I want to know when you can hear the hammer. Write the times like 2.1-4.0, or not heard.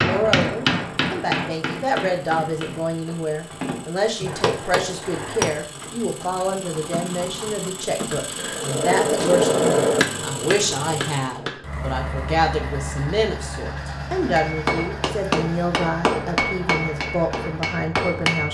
0.0-5.5, 8.1-11.8, 14.3-18.4.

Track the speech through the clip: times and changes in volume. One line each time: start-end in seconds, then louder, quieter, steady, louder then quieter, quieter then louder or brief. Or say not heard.
0.0-18.4 steady.